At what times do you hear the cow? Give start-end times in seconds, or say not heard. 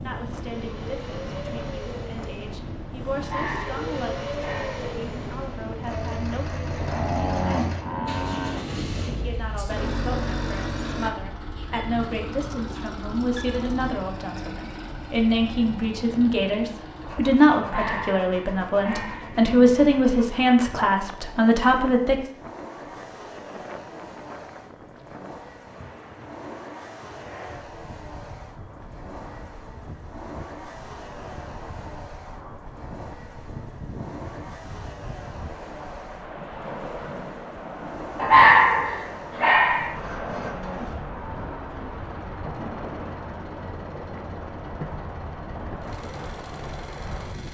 6.8-8.7, 40.2-42.0.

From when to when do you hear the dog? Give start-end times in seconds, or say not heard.
3.1-5.0, 17.6-19.4, 38.1-39.9.